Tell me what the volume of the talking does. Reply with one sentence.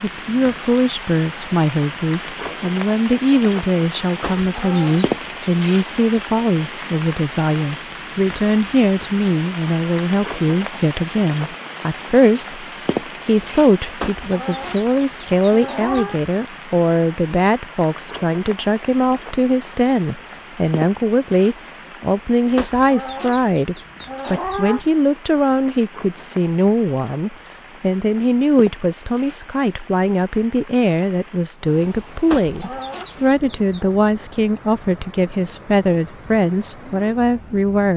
The volume of the talking stays about the same.